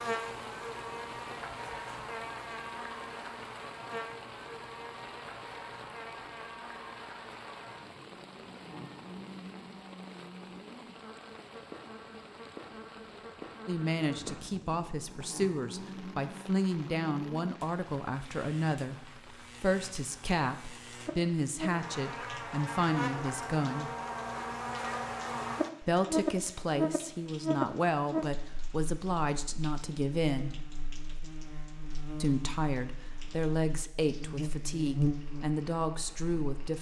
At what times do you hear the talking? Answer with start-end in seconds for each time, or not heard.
13.7-23.9, 25.8-30.6, 32.2-36.7.